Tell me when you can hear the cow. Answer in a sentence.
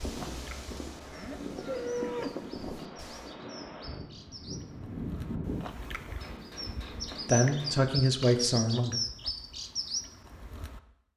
You can hear the cow from 0.0 to 3.4 s.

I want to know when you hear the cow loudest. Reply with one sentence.
The loudest moment of the cow is at 2 seconds.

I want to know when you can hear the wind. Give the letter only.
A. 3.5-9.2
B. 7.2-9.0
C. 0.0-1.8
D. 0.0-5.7
D.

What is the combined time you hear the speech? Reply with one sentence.
You can hear the speech for 2 seconds altogether.